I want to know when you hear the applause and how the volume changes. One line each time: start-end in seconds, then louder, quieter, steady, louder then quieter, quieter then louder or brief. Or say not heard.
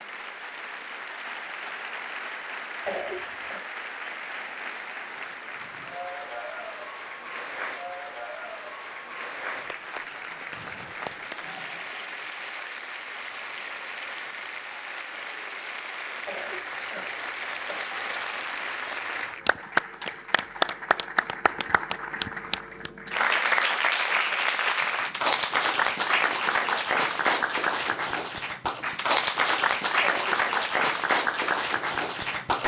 0.0-32.6 louder.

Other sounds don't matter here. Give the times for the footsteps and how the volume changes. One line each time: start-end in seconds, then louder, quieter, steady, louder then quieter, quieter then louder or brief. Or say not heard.
not heard.